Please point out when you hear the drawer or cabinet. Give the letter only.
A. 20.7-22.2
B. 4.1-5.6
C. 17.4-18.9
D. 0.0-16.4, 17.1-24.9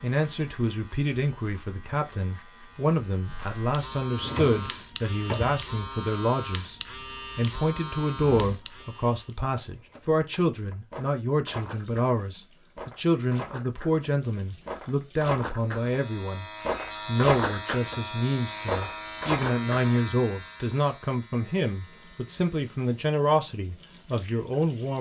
B.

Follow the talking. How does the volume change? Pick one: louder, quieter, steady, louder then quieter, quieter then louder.
steady.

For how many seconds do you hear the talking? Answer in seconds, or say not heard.
24 s.